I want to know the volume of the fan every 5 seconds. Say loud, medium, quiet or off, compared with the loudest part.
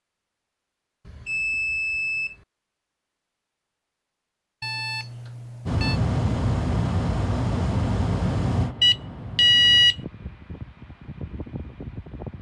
off, loud, quiet.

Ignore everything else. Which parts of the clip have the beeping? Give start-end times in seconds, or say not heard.
1.1-2.4, 4.6-6.0, 8.8-9.9.